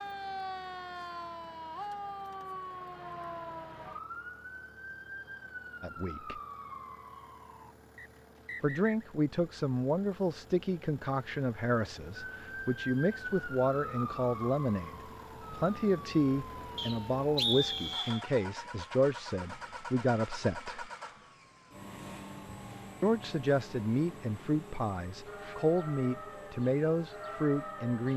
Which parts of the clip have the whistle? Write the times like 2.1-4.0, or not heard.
8.0-9.1, 16.8-18.2.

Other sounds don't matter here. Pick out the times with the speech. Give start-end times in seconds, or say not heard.
5.8-6.4, 8.6-20.9, 23.0-28.1.